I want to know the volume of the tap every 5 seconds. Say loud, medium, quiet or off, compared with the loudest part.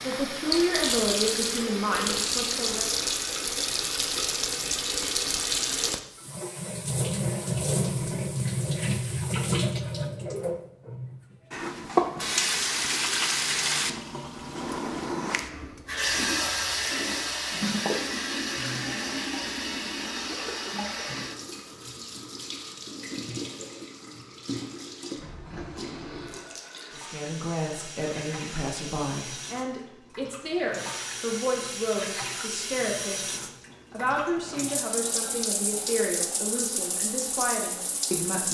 loud, loud, loud, loud, medium, quiet, medium, medium.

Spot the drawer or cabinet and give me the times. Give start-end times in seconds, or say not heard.
25.1-26.4.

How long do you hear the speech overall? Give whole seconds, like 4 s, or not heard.
14 s.